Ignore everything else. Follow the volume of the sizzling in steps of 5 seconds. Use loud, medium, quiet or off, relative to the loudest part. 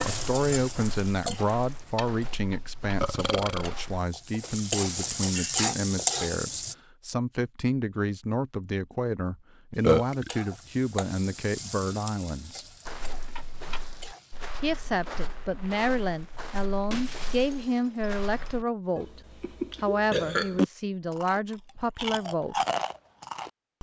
medium, loud, quiet, off, off.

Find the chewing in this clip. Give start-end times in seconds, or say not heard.
21.1-23.7.